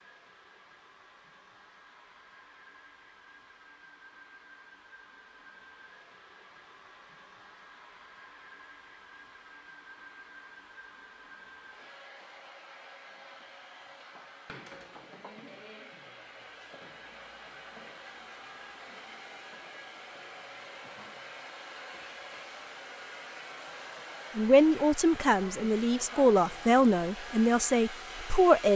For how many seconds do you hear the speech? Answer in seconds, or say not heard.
4 s.